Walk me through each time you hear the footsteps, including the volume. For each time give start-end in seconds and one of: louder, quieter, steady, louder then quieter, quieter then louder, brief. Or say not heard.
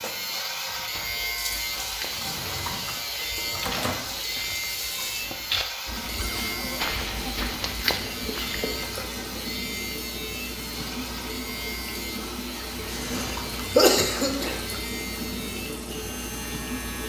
0.7-8.9 louder.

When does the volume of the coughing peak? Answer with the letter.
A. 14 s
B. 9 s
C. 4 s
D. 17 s
A.